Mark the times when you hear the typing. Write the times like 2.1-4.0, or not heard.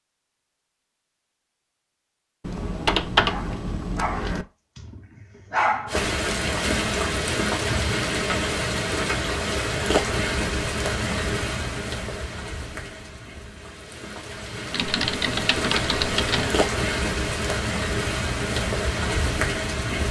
2.4-4.5, 14.7-16.6.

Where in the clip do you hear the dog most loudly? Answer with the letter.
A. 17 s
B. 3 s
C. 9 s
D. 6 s
D.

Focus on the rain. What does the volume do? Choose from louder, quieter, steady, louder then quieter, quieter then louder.
quieter then louder.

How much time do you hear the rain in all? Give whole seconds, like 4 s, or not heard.
14 s.